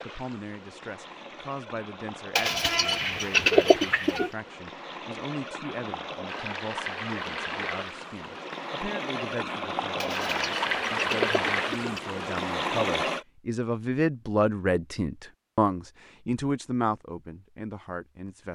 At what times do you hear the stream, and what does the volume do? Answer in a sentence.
The stream can be heard from 0.0 to 13.2 s, getting louder.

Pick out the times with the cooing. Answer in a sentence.
You can hear the cooing from 2.4 to 4.3 s and from 10.0 to 12.0 s.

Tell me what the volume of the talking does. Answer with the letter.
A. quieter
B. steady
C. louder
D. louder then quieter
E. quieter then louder
C.